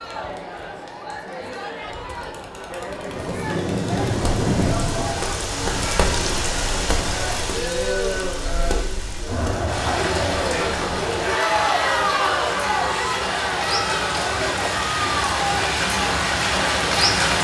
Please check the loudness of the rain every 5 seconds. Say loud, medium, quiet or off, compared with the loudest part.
loud, medium, medium, loud.